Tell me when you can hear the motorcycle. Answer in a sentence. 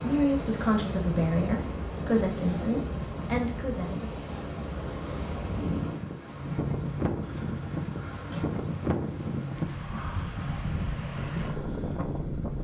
The motorcycle can be heard from 0.0 to 12.5 s.